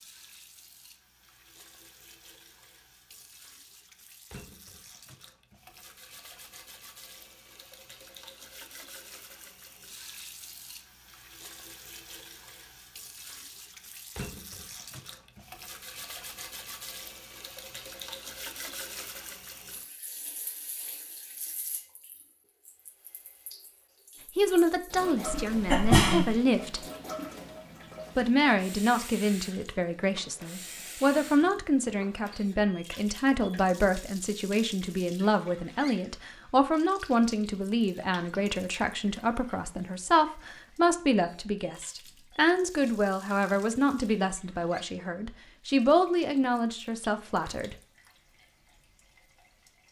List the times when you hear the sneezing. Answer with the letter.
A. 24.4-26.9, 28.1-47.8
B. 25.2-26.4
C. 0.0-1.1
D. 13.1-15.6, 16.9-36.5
B.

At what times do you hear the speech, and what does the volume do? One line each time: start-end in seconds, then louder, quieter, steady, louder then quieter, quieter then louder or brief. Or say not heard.
24.4-26.9 brief
28.1-47.8 steady.